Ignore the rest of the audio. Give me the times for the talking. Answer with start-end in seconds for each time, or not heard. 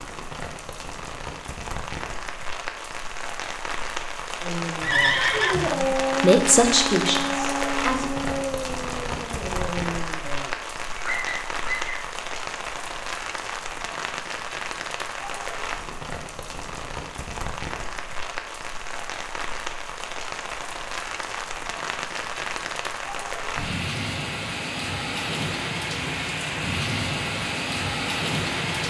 5.7-8.1.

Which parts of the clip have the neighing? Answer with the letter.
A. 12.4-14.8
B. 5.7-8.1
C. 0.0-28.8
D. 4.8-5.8
D.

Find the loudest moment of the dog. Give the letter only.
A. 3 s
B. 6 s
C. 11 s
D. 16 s
B.